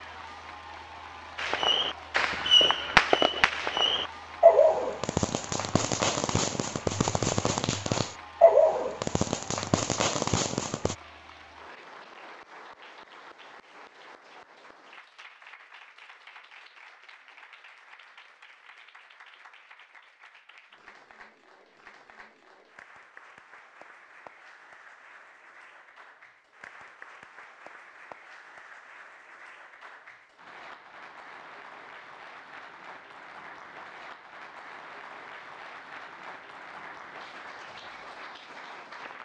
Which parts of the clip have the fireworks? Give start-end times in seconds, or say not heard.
1.4-10.9.